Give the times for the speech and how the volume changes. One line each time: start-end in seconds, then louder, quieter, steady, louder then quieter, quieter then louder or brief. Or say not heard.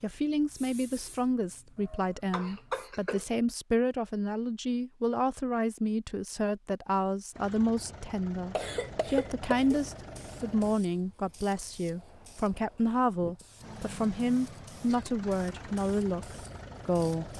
0.0-17.3 steady.